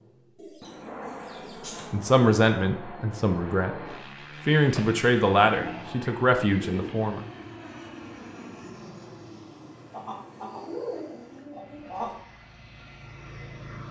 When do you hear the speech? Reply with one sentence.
The speech can be heard from 1.9 to 7.2 s.